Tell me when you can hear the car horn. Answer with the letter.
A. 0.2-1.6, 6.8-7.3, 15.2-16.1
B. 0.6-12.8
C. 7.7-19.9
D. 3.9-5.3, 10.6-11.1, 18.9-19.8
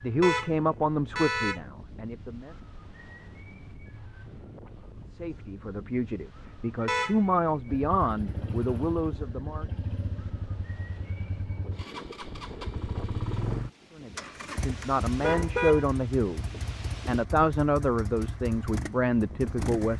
A.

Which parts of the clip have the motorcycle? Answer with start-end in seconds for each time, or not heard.
7.7-19.9.